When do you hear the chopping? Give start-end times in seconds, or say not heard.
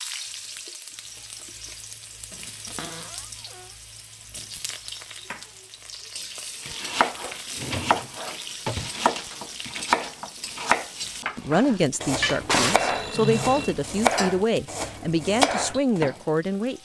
6.7-16.0.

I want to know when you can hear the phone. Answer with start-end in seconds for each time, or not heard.
12.2-13.8.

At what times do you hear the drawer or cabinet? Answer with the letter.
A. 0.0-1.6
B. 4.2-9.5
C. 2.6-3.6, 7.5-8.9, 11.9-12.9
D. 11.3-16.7
C.